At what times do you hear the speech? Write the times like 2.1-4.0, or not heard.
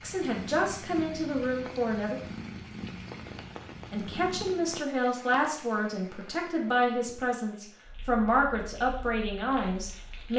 0.0-2.2, 3.9-10.3.